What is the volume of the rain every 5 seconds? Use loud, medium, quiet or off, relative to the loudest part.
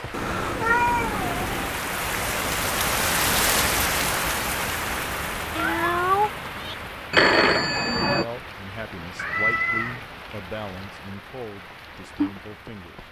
loud, medium, medium.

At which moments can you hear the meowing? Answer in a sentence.
The meowing can be heard from 0.1 to 1.8 s, from 5.5 to 6.8 s and from 9.2 to 10.1 s.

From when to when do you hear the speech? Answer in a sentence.
You can hear the speech from 8.1 to 13.0 s.